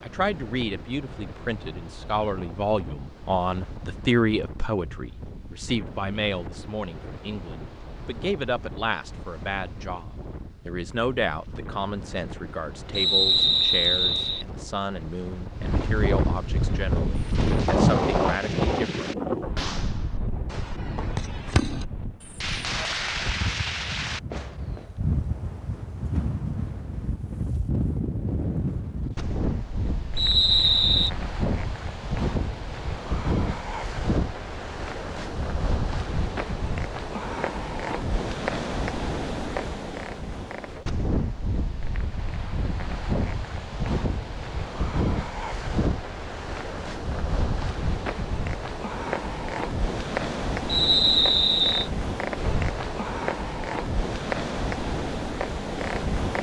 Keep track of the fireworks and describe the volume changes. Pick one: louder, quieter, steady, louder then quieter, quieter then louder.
louder.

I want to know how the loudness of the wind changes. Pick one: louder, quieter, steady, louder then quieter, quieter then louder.
louder.